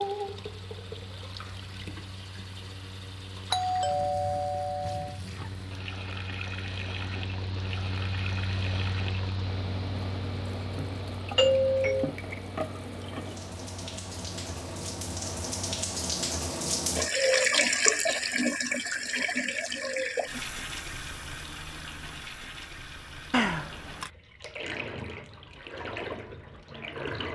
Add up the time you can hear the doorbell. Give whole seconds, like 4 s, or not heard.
3 s.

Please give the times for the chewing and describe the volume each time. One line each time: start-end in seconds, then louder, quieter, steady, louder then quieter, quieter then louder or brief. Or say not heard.
not heard.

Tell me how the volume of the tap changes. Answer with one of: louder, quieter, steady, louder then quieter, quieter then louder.
louder then quieter.